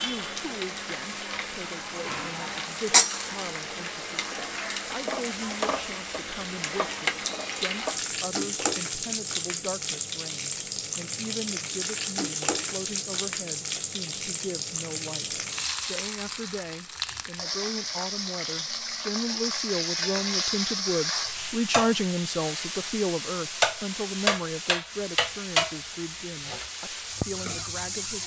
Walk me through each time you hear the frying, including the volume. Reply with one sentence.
The frying can be heard from 0.0 to 28.2 s, at a steady volume.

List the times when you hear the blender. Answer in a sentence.
You can't hear the blender here.